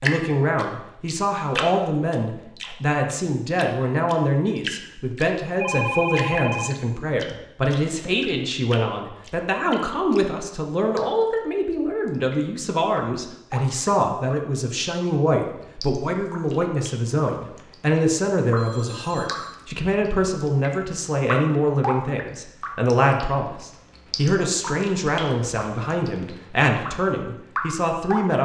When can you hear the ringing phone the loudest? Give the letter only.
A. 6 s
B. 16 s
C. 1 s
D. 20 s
A.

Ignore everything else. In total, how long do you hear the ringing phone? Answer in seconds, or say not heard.
2 s.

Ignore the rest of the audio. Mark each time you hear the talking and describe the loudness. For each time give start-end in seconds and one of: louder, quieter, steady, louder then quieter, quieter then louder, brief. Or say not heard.
0.0-28.4 steady.